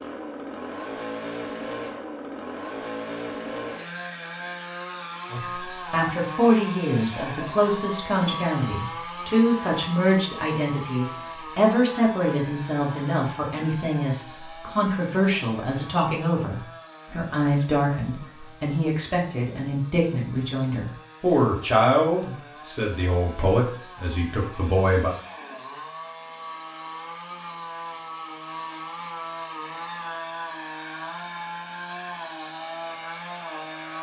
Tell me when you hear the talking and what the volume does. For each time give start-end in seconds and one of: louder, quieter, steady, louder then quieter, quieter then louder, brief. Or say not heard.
5.3-25.1 steady.